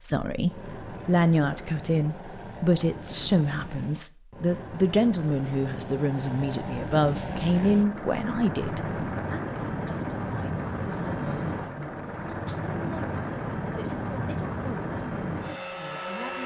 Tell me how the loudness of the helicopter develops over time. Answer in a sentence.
The loudness of the helicopter goes up.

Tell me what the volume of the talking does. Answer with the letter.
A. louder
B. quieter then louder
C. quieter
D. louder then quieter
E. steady
C.